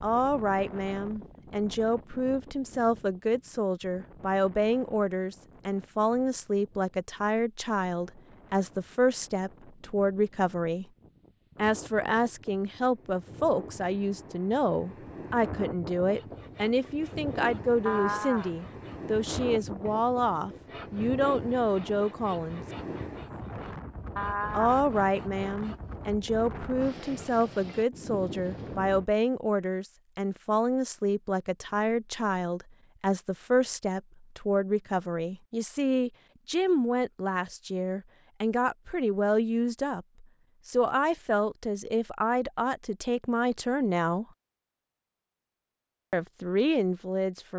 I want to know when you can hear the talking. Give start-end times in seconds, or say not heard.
0.0-10.8, 11.6-22.6, 24.5-44.2, 46.1-47.5.